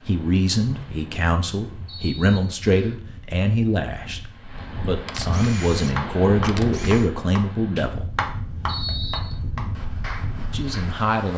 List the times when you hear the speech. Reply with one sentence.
You can hear the speech from 0.1 to 8.1 s and from 10.5 to 11.3 s.